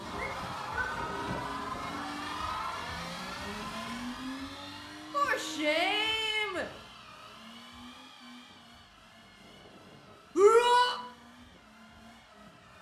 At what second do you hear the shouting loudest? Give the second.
11 s.